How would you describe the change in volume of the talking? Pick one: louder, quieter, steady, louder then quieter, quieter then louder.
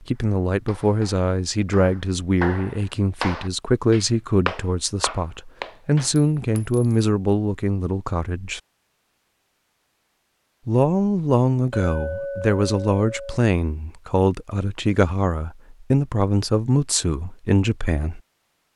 steady.